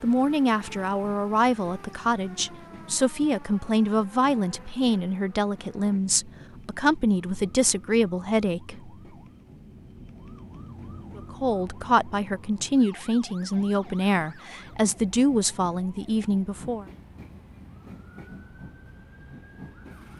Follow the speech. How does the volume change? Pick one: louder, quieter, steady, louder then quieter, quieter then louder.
steady.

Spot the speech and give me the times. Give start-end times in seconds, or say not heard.
0.0-8.9, 11.2-16.9.